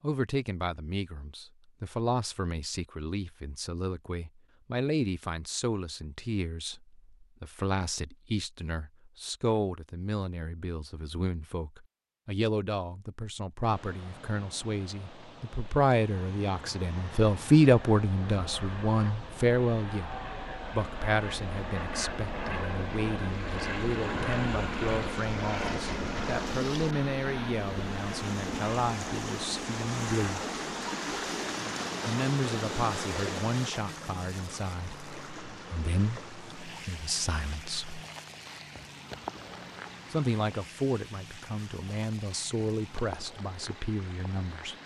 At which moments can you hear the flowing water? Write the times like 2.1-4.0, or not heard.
13.6-44.8.